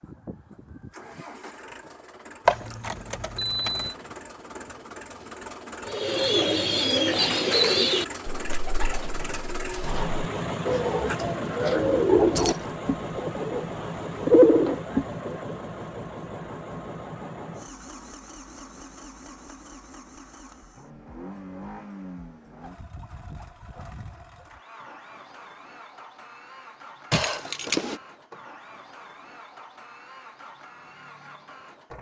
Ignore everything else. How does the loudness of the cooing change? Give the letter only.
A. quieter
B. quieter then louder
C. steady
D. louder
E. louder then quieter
B.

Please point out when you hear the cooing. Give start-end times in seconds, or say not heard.
5.8-15.6.